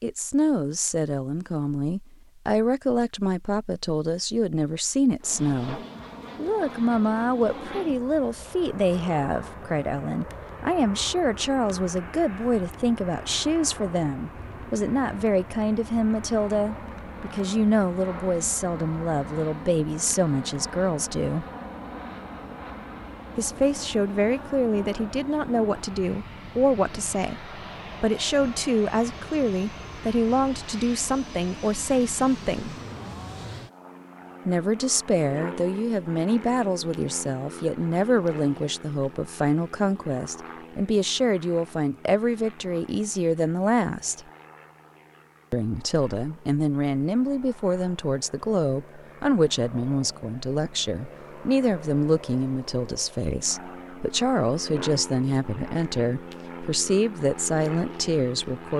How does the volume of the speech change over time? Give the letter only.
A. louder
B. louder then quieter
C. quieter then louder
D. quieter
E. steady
E.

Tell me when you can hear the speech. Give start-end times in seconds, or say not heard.
0.0-21.4, 23.4-32.8, 34.5-44.2, 45.5-58.7.